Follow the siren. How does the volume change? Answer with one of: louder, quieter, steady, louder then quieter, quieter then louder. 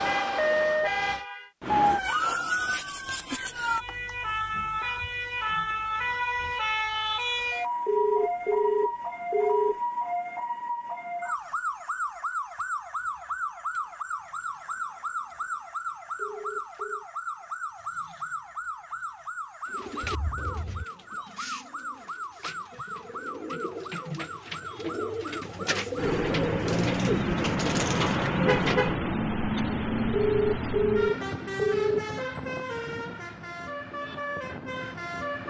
quieter.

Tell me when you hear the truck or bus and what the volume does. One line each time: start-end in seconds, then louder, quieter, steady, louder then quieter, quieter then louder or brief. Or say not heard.
25.9-35.4 quieter.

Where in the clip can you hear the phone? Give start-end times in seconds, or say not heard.
7.8-9.8, 16.1-17.1, 30.1-32.0.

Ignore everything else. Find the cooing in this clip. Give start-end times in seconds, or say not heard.
19.6-28.9.